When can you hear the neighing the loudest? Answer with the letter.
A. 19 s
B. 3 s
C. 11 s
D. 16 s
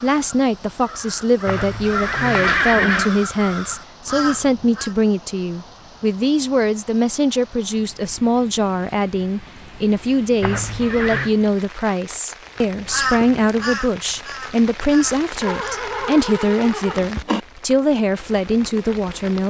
B.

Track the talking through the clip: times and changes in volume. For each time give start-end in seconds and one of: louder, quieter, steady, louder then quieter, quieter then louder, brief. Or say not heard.
0.0-19.4 steady.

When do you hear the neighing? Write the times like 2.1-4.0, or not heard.
1.4-3.1, 10.4-11.3, 15.4-17.4.